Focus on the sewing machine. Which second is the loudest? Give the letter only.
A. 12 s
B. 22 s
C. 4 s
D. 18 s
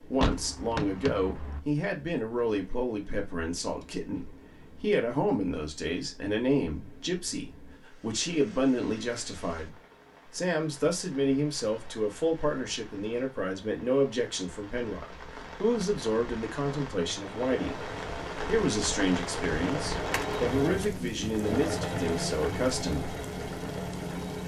B.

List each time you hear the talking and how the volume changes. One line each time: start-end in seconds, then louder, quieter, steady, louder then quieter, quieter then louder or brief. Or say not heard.
0.0-23.1 steady.